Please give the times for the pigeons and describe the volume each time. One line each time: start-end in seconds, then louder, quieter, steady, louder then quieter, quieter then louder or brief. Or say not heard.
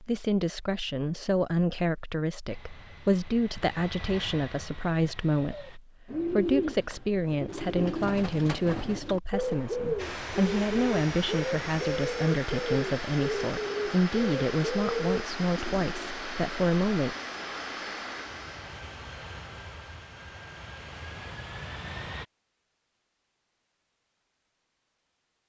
5.4-16.1 steady.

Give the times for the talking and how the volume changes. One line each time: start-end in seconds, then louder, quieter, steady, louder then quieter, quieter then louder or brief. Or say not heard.
0.0-17.1 steady.